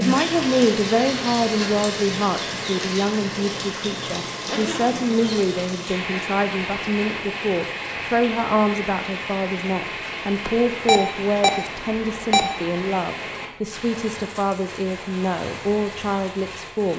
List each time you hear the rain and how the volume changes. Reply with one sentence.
You can hear the rain from 0.0 to 16.9 s, getting quieter.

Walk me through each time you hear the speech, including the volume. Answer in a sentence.
The speech can be heard from 0.0 to 16.9 s, at a steady volume.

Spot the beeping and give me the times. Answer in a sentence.
You can hear the beeping from 10.4 to 12.9 s.